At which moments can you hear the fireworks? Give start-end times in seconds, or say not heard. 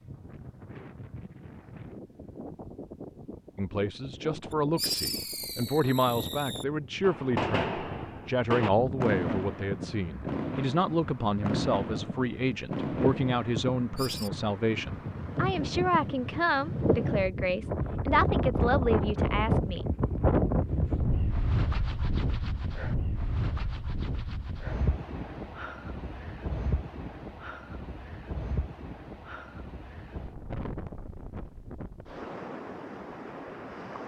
4.8-14.3.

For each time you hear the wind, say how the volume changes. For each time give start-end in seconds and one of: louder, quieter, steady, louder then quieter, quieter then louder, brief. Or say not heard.
0.0-34.0 louder then quieter.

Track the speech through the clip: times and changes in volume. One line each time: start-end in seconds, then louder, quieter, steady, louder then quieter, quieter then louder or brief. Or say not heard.
3.5-19.9 steady.